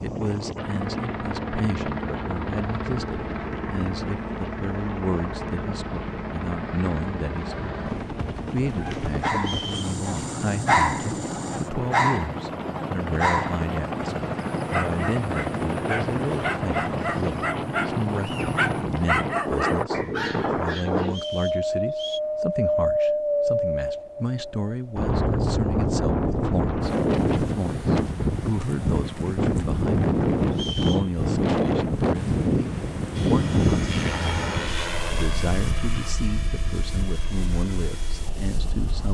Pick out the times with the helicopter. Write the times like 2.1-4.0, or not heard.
0.0-18.8, 33.1-39.0.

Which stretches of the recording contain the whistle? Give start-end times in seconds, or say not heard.
9.3-10.0, 21.1-22.2, 30.5-31.1.